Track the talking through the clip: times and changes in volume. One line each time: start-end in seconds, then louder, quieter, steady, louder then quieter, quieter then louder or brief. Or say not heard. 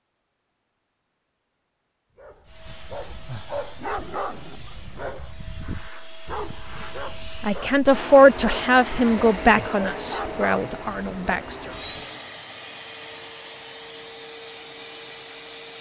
7.4-11.6 quieter.